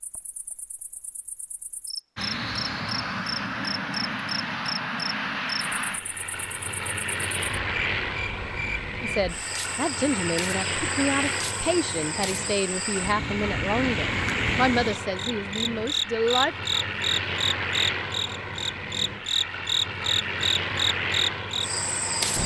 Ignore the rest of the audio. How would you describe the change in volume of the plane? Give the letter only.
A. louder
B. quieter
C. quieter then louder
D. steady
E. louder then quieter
D.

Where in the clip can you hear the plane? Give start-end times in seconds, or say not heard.
2.1-22.4.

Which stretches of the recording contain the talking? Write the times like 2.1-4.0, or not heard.
9.0-16.6.